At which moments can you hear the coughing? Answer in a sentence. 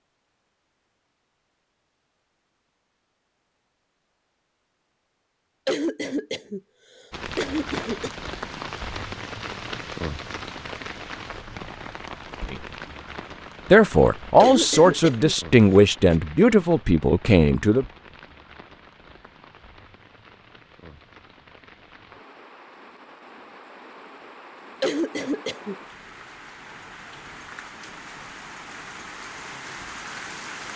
You can hear the coughing from 5.7 to 6.6 s, from 7.3 to 8.2 s, from 14.4 to 16.2 s and from 24.8 to 25.8 s.